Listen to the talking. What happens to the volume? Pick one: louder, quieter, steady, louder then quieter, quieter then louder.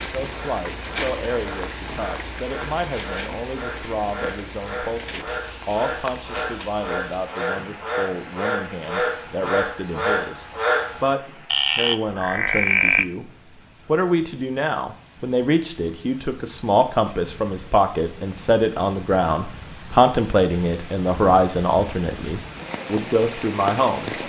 louder.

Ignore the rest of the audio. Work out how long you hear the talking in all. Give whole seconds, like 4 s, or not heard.
24 s.